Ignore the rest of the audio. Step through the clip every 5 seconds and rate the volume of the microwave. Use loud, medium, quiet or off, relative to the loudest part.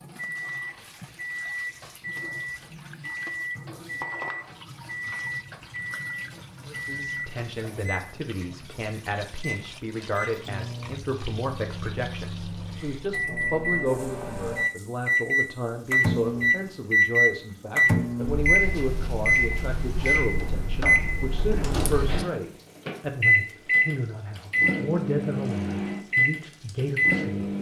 quiet, quiet, medium, loud, loud, loud.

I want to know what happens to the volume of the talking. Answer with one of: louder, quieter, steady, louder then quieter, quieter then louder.
steady.